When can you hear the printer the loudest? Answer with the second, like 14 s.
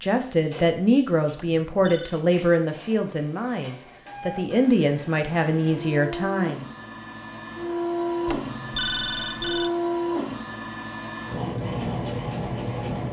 10 s.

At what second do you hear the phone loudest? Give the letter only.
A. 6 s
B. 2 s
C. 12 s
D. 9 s
D.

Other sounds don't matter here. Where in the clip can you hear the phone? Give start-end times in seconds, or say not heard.
1.4-2.2, 8.2-9.7.